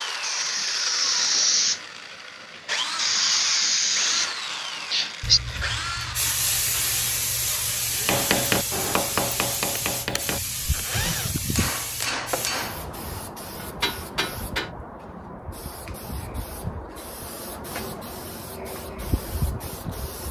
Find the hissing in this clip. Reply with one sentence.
The hissing can be heard from 0.0 to 20.2 s.